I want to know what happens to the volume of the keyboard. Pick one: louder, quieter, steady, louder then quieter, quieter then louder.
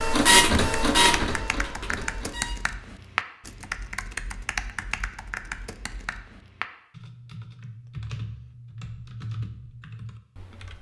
quieter.